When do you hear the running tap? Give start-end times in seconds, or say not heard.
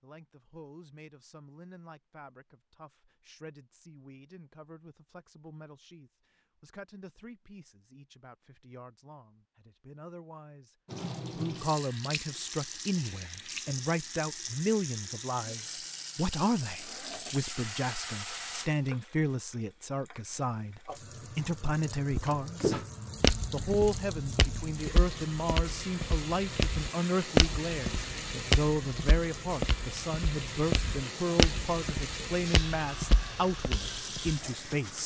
10.8-35.0.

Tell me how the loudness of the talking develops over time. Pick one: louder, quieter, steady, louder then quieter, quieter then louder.
louder.